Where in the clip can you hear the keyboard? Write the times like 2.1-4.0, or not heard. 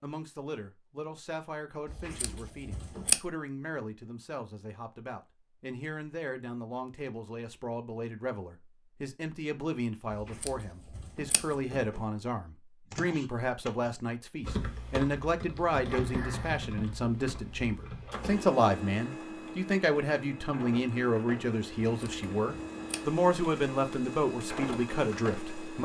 12.9-18.4.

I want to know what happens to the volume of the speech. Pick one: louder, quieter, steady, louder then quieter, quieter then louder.
louder.